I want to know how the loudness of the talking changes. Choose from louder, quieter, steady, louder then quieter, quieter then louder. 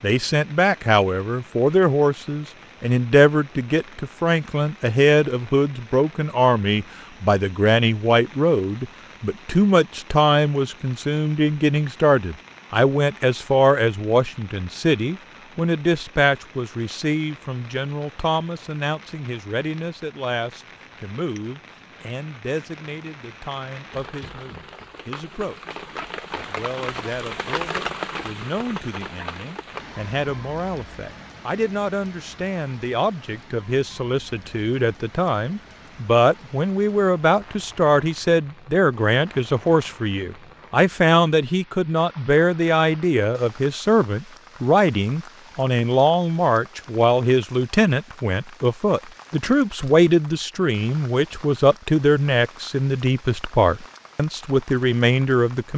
quieter then louder.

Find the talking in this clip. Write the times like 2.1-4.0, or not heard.
0.0-55.7.